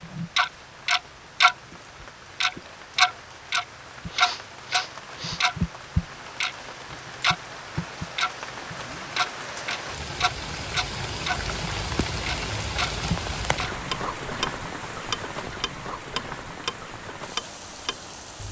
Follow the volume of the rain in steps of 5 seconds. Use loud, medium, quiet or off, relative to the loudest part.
quiet, medium, loud, medium.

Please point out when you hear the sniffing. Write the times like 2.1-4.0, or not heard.
4.0-5.5.